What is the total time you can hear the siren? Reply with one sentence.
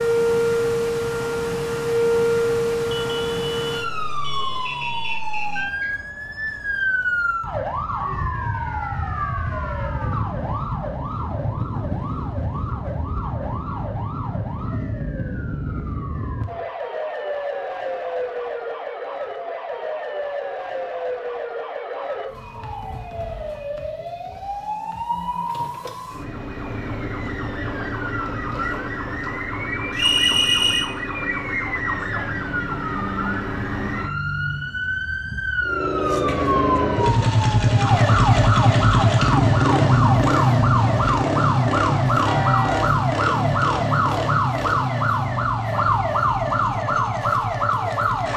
You can hear the siren for 48 seconds altogether.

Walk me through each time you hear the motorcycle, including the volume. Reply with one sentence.
You can hear the motorcycle from 35.6 to 48.3 s, getting quieter.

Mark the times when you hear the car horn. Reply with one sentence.
The car horn can be heard from 2.9 to 5.2 s and from 42.2 to 42.9 s.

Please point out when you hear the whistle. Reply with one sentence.
You can hear the whistle from 4.7 to 6.0 s and from 29.9 to 30.9 s.